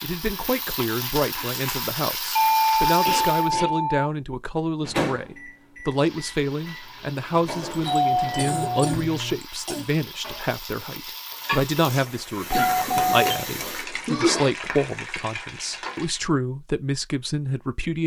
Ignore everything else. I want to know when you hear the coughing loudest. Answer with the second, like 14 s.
14 s.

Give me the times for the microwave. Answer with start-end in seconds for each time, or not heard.
4.8-9.3.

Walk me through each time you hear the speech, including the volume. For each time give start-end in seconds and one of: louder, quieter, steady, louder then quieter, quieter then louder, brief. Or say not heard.
0.0-18.0 steady.